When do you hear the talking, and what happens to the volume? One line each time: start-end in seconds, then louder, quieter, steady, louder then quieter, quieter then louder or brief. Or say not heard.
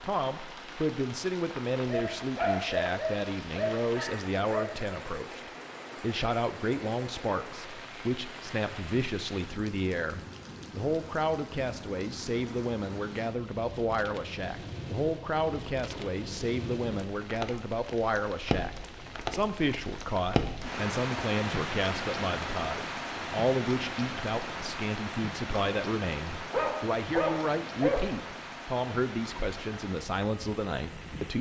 0.0-31.3 steady.